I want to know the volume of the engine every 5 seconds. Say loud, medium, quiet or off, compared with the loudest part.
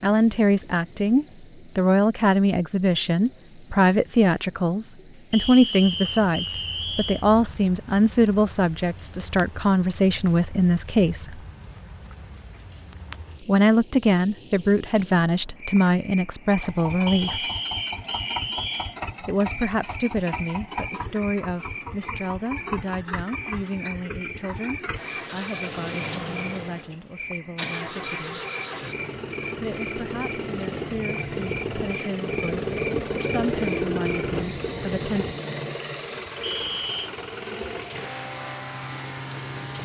off, off, off, medium, medium, medium, loud, medium.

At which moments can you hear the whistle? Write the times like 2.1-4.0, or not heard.
5.3-7.2, 17.1-18.9, 36.4-37.1.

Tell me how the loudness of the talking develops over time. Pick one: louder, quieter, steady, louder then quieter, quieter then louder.
quieter.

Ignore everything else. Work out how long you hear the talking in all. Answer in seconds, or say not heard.
30 s.